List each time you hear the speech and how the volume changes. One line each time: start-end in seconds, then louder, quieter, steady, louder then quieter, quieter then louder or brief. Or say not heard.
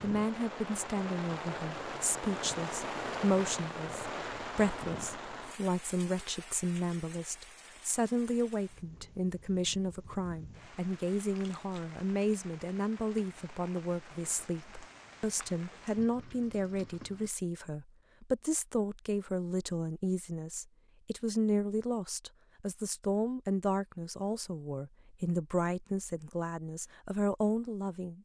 0.0-28.2 steady.